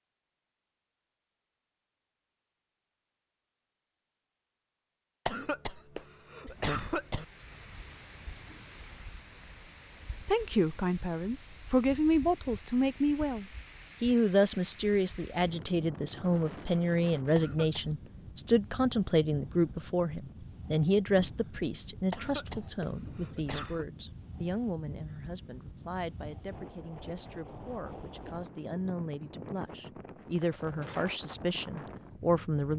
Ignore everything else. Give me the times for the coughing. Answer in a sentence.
The coughing can be heard from 5.2 to 7.2 s, from 17.4 to 18.1 s and from 22.1 to 23.9 s.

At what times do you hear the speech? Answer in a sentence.
The speech can be heard from 10.2 to 32.7 s.